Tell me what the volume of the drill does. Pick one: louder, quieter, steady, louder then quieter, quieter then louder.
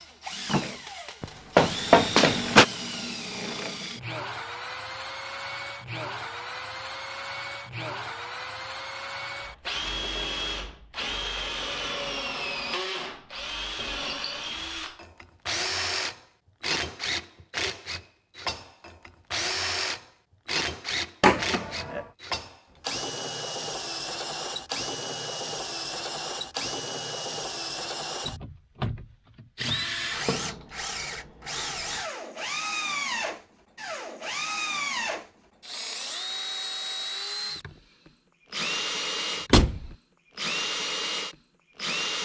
steady.